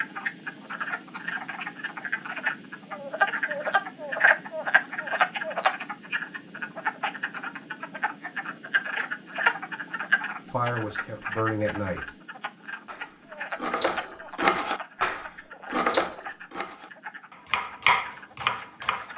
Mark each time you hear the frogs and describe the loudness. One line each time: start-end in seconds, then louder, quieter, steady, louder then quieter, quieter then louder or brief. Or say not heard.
0.0-19.1 quieter.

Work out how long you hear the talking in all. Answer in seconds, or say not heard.
2 s.